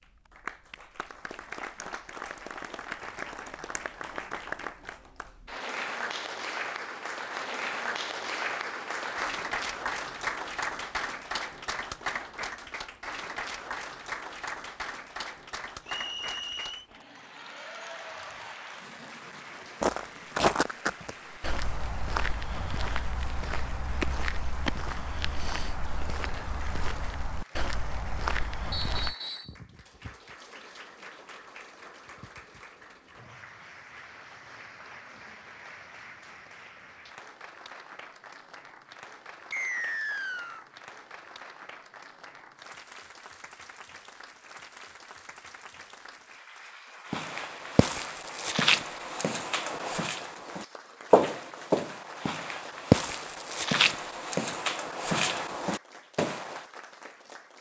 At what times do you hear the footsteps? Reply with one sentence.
The footsteps can be heard from 19.8 to 29.1 s and from 47.1 to 56.6 s.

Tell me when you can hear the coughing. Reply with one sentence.
The coughing can't be heard in this clip.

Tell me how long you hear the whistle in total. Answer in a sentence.
You can hear the whistle for 3 seconds altogether.